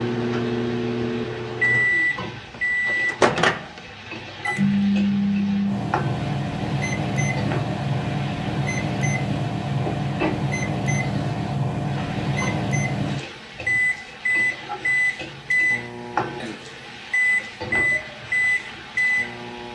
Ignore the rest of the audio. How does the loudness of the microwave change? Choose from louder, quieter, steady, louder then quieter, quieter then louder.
steady.